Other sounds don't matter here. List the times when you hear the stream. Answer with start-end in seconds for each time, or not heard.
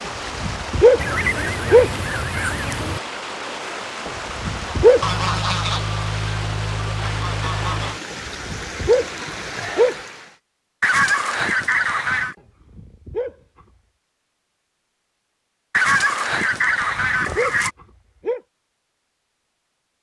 0.0-10.3.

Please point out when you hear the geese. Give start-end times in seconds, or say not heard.
0.9-3.0, 5.0-8.0, 10.8-12.3, 15.7-17.7.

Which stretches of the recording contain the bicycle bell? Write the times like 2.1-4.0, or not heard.
not heard.